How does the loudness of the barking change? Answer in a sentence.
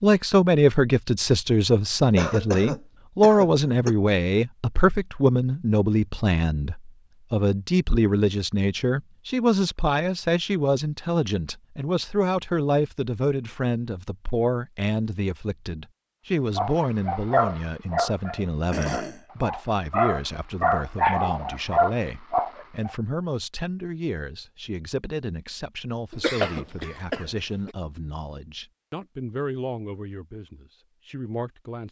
The loudness of the barking goes down, then up.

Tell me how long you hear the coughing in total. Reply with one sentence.
The coughing can be heard for 4 seconds in total.